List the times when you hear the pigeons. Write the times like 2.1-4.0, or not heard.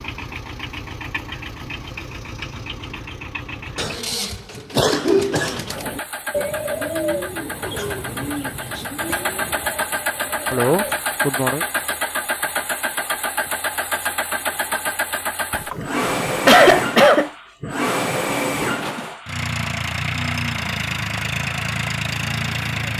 5.2-10.9.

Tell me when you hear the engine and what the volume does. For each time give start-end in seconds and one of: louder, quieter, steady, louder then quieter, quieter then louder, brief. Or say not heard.
0.0-22.9 louder.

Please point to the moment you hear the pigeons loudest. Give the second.
7 s.